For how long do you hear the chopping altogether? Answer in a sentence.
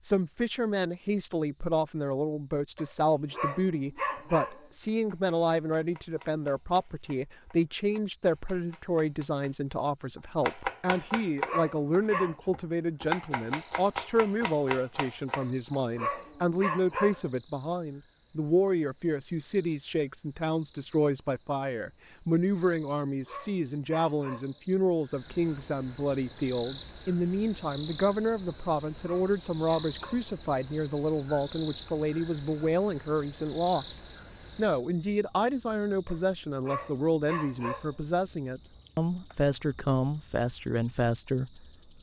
You can hear the chopping for 11 seconds altogether.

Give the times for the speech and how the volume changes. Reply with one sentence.
You can hear the speech from 0.0 to 41.6 s, at a steady volume.